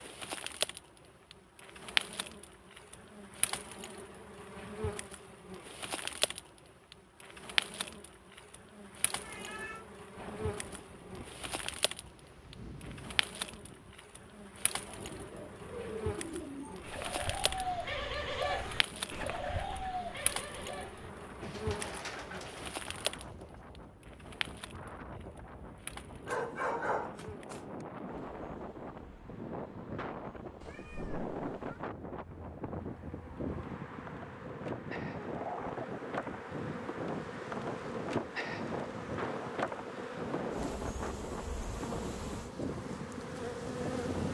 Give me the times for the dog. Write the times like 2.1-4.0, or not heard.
26.2-27.9.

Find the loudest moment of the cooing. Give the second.
18 s.